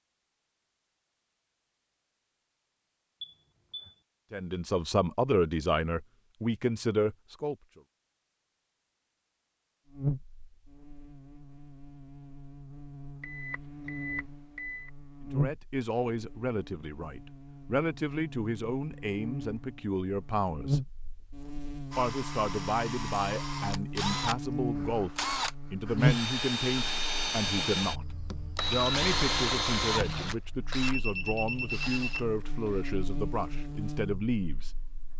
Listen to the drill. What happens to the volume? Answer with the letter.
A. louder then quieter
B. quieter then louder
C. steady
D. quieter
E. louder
A.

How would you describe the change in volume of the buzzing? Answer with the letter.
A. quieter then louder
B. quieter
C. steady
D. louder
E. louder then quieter
E.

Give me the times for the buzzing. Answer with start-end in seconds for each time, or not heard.
9.8-35.1.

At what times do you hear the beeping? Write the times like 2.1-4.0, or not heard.
3.2-4.0, 13.2-14.9, 30.8-32.8.